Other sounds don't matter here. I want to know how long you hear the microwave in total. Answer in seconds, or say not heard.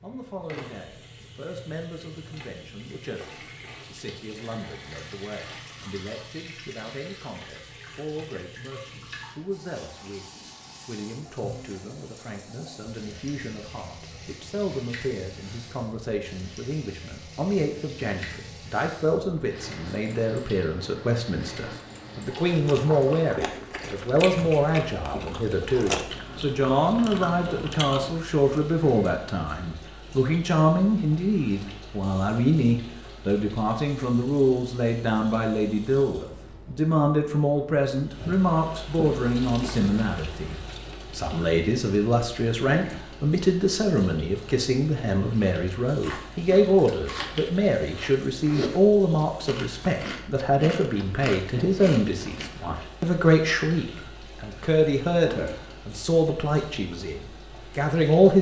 not heard.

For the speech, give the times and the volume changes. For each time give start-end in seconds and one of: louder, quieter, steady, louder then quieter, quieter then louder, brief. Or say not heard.
0.0-58.3 louder.